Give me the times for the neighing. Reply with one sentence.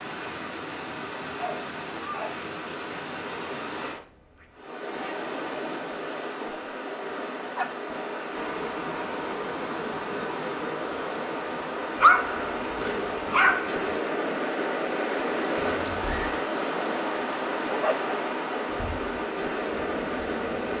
The neighing can be heard from 15.6 to 16.4 s.